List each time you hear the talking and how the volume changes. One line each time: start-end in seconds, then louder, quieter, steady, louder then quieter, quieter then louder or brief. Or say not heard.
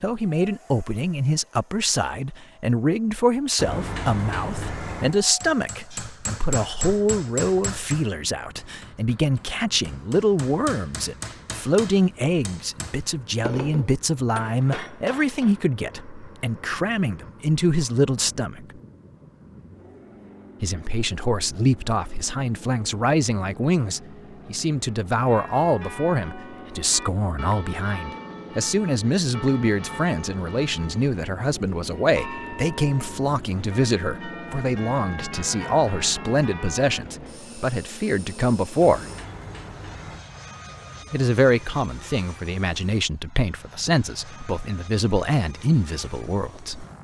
0.0-18.6 steady
20.6-39.0 steady
41.1-46.9 steady.